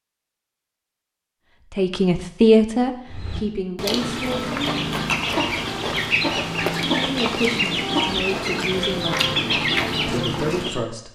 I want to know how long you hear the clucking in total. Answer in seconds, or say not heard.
8 s.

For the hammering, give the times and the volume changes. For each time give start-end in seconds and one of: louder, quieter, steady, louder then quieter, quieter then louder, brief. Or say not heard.
not heard.